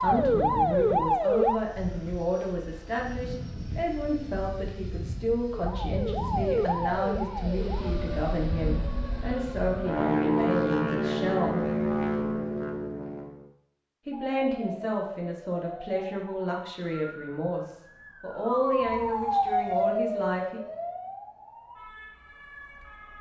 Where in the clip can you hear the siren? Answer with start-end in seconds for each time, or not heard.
0.0-1.6, 5.5-10.1, 14.1-23.1.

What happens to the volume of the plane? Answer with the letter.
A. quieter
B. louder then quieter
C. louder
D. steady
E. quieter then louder
C.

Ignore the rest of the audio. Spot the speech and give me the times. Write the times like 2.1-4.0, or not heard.
0.0-11.7, 14.1-20.6.